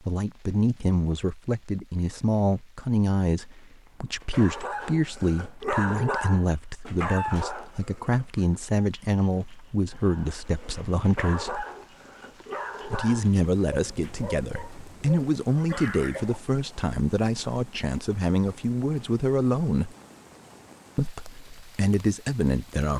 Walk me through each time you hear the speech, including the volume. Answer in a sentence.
The speech can be heard from 0.1 to 11.7 s, at a steady volume; from 12.8 to 19.9 s, at a steady volume; and briefly from 20.9 to 22.9 s.